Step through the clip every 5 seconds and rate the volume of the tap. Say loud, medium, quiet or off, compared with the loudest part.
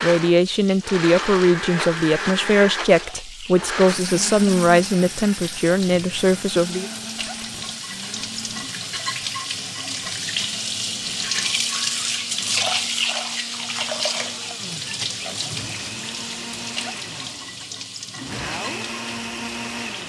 quiet, medium, loud, medium.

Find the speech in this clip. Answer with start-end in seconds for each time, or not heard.
0.0-6.9.